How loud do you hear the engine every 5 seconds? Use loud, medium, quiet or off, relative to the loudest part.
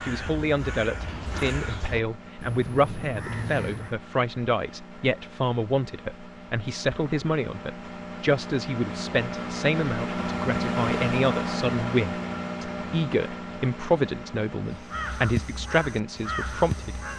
quiet, medium, loud, quiet.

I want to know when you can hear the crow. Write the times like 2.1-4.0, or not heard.
0.0-4.0, 14.6-17.1.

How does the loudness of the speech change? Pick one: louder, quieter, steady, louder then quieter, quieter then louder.
steady.